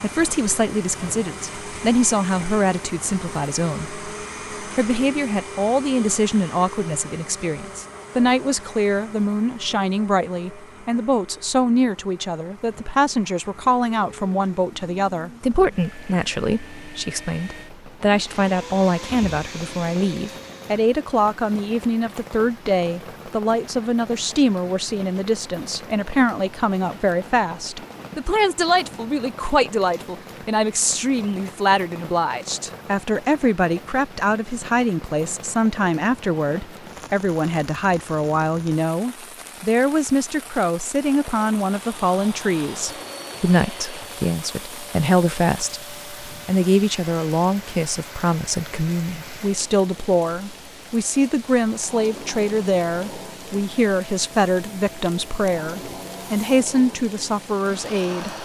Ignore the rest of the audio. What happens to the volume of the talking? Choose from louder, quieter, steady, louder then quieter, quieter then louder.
steady.